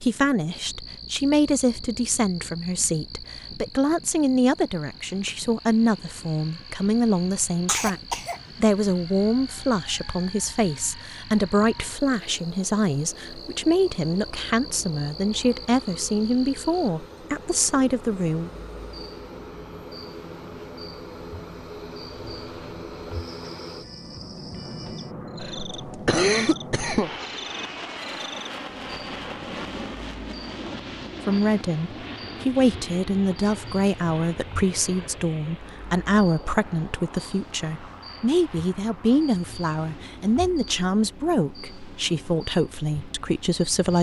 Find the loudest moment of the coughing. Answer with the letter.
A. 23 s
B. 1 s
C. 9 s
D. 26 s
D.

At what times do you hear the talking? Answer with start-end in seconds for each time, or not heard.
0.0-18.5, 31.2-43.9.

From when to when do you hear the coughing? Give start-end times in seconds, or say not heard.
7.7-8.4, 25.4-27.1.